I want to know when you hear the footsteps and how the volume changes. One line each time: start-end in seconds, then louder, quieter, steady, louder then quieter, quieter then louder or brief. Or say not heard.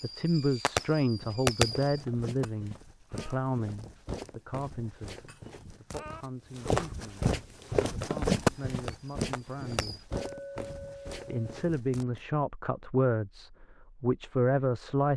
1.1-12.2 louder then quieter.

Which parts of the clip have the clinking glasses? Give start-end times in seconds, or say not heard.
2.4-3.4, 5.2-6.2, 10.1-11.7.